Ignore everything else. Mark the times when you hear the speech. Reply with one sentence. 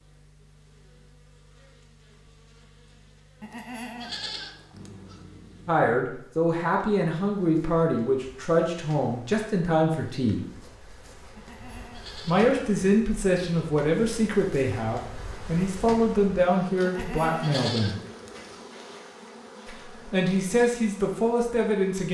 The speech can be heard from 5.7 to 10.4 s, from 12.2 to 18.0 s and from 19.6 to 22.0 s.